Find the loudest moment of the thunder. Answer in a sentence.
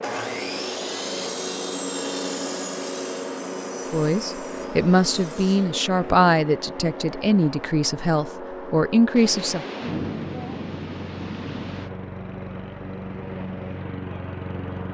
The loudest moment of the thunder is at 10 seconds.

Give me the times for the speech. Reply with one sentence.
The speech can be heard from 3.9 to 9.6 s.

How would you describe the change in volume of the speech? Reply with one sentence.
The volume of the speech stays about the same.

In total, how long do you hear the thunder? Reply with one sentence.
You can hear the thunder for 3 seconds altogether.